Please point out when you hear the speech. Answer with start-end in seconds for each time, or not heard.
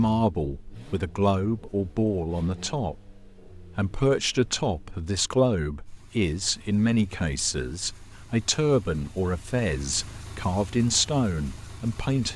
0.0-12.3.